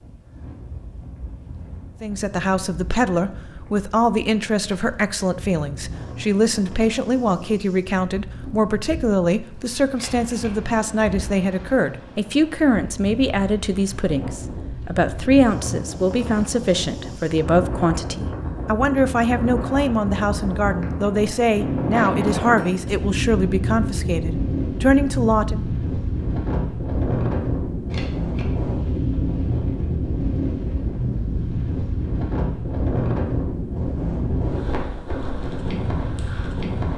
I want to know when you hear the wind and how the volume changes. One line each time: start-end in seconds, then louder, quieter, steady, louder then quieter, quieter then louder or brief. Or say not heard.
0.0-36.9 louder.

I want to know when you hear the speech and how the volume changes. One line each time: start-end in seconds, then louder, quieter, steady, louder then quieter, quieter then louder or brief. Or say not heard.
2.0-25.6 steady.